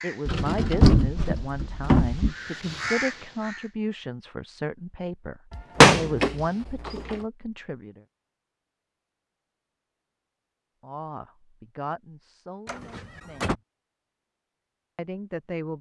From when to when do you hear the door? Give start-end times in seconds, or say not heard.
0.2-2.4, 5.5-7.2, 12.7-13.6.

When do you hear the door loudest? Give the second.
6 s.